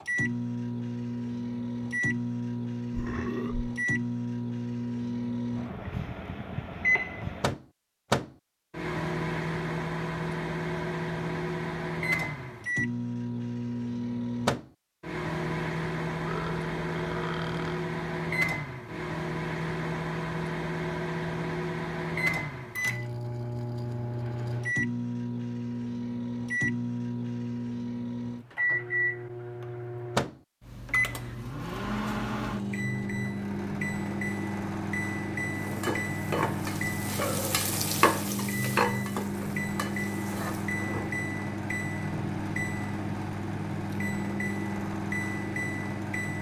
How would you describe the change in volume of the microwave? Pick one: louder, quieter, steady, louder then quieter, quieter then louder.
steady.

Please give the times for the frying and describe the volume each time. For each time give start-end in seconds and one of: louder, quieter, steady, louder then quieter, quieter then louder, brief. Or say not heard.
35.5-41.1 louder then quieter.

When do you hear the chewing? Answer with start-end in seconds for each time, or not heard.
not heard.